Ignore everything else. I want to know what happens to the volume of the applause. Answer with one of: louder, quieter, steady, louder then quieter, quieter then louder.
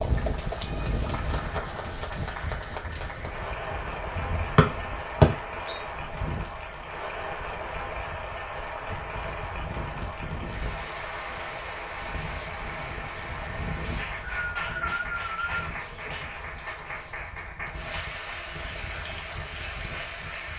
steady.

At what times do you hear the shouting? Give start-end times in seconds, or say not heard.
not heard.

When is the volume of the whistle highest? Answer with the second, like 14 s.
5 s.